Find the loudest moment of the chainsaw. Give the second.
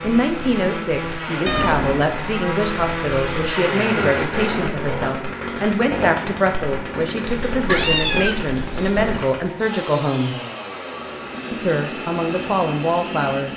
4 s.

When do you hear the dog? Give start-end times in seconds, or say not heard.
not heard.